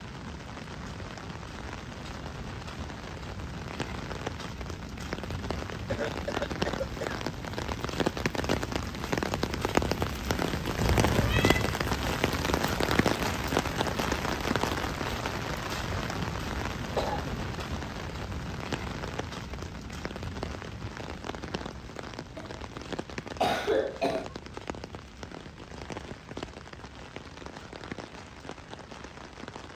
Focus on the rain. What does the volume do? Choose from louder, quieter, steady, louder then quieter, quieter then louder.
louder then quieter.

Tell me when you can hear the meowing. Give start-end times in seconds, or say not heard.
10.8-11.8.